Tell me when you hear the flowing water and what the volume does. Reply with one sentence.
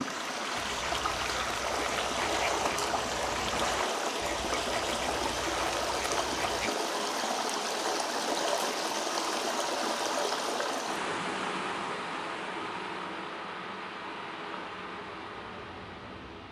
You can hear the flowing water from 0.0 to 16.4 s, getting quieter.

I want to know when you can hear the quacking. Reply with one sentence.
The quacking can be heard from 0.6 to 6.7 s.